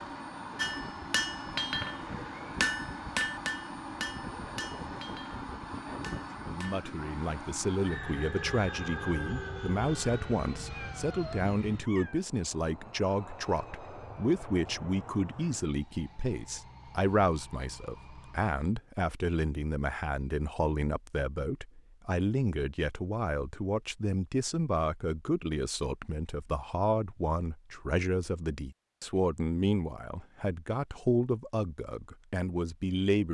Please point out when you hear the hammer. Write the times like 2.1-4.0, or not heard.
0.6-6.8.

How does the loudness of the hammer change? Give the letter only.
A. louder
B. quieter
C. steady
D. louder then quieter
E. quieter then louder
B.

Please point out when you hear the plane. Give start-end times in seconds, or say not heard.
0.0-18.6.